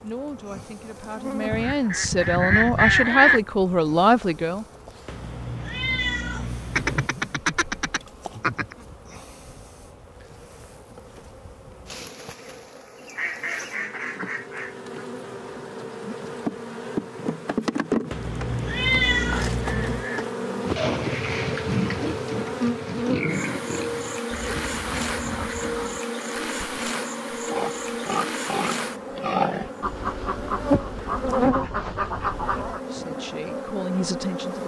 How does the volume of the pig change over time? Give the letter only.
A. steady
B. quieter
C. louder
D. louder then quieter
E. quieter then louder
E.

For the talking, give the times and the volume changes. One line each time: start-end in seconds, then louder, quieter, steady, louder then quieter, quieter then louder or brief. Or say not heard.
0.0-4.7 louder
32.9-34.6 brief.